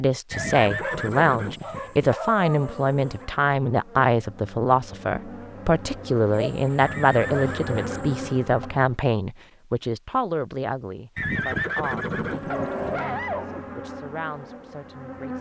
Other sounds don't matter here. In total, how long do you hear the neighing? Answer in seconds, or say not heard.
6 s.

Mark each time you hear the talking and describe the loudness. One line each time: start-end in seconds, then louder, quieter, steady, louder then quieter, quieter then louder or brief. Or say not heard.
0.0-15.3 quieter.